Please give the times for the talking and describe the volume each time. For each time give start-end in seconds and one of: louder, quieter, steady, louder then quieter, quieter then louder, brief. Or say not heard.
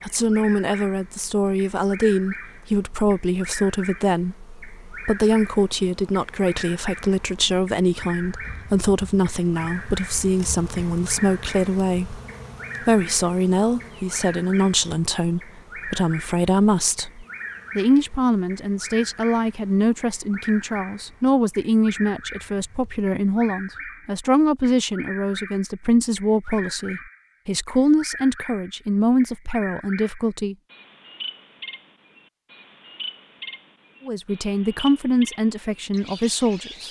0.0-12.2 steady
12.8-30.6 steady
34.0-36.8 brief.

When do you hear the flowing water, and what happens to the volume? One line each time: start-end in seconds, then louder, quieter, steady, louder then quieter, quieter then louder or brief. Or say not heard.
not heard.